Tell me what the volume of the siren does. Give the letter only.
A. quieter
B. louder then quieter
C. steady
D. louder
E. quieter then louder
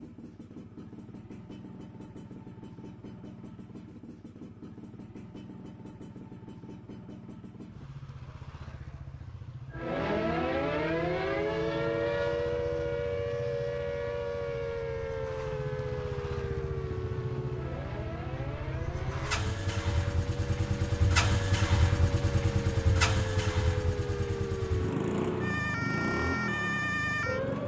E.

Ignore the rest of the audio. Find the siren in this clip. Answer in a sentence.
The siren can be heard from 9.7 to 27.6 s.